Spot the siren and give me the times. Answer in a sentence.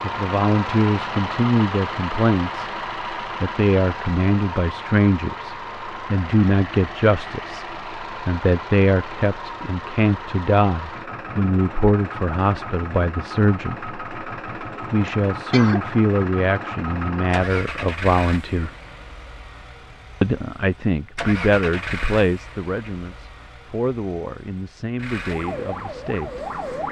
You can hear the siren from 25.2 to 26.8 s.